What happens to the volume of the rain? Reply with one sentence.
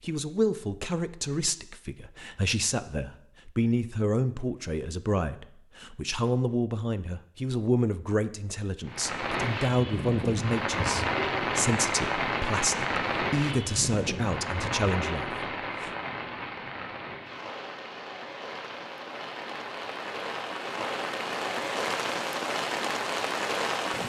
The volume of the rain goes down, then up.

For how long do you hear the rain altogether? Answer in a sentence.
The rain can be heard for 15 seconds in total.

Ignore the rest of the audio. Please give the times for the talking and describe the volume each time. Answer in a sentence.
The talking can be heard from 0.0 to 15.9 s, at a steady volume.